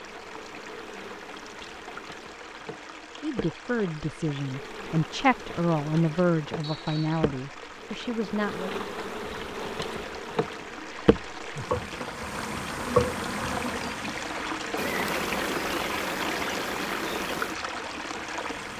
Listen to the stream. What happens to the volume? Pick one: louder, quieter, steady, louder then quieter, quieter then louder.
louder.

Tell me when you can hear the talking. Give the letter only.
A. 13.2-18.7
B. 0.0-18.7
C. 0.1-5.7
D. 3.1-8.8
D.